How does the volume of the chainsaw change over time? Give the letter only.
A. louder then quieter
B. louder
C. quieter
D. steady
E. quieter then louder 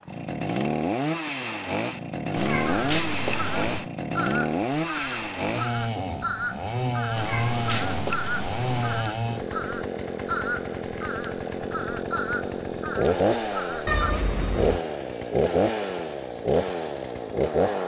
D.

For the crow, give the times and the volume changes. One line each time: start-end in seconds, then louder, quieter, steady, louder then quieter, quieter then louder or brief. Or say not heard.
2.5-14.1 steady.